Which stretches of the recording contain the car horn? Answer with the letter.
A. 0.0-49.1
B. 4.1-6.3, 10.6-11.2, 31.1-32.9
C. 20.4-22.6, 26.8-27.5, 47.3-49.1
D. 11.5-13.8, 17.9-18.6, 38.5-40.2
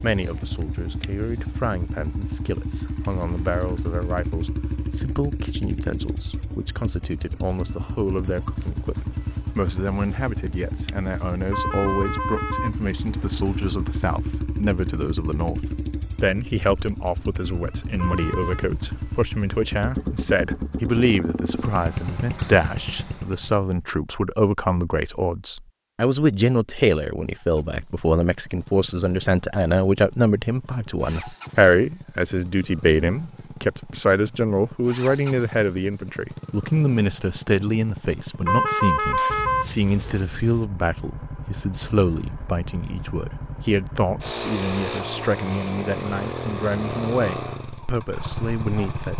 D.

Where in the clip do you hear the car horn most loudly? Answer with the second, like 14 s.
39 s.